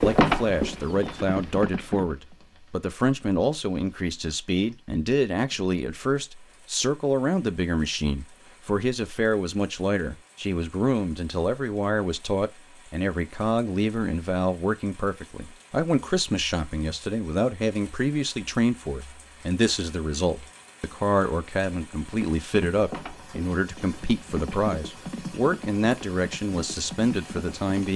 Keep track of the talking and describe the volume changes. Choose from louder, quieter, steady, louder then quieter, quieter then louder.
steady.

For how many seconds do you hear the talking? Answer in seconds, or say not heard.
28 s.